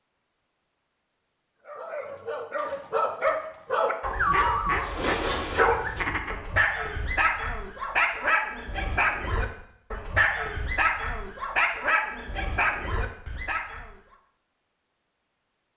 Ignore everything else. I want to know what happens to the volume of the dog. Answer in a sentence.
The volume of the dog stays about the same.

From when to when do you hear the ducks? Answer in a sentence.
The ducks can be heard from 4.0 to 6.4 s.